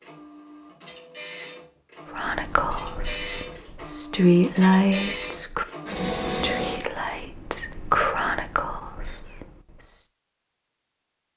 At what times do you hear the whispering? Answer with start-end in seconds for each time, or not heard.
2.1-10.1.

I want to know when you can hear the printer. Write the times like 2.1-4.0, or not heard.
0.0-6.8.